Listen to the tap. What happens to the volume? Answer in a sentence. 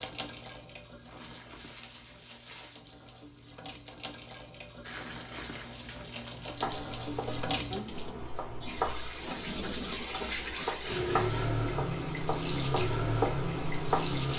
The loudness of the tap goes up.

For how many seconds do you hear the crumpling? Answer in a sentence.
You can hear the crumpling for 4 seconds altogether.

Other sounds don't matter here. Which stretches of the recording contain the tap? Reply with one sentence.
You can hear the tap from 0.0 to 14.3 s.